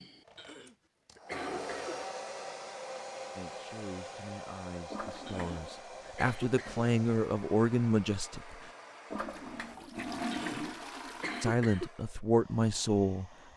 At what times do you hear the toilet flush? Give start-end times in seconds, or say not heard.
1.3-2.1, 4.9-5.8, 9.1-11.6.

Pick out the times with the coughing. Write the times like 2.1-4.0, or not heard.
0.3-1.9, 5.2-6.8, 10.3-11.9.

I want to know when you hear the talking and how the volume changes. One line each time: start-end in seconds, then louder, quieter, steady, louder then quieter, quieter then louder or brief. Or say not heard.
3.4-8.7 louder
11.4-13.3 brief.